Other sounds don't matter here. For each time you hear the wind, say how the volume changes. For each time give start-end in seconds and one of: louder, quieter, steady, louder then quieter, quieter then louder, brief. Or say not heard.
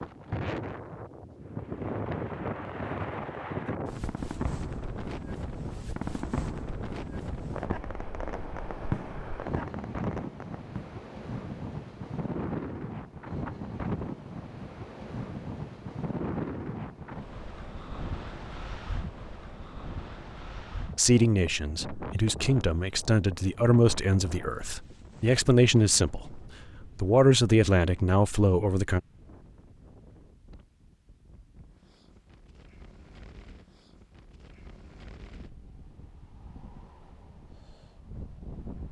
0.0-38.8 quieter.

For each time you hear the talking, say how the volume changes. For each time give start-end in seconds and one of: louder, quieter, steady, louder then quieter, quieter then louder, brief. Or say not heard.
20.9-29.0 louder.